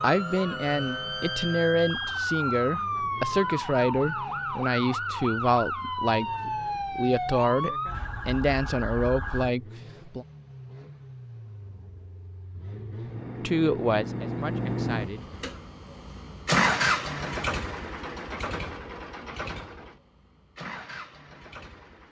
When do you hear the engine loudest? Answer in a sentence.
The loudest moment of the engine is at 17 seconds.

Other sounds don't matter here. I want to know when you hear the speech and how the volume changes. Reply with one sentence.
You can hear the speech from 0.0 to 10.2 s, at a steady volume; and briefly from 13.4 to 15.3 s.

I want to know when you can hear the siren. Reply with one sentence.
You can hear the siren from 0.0 to 9.5 s.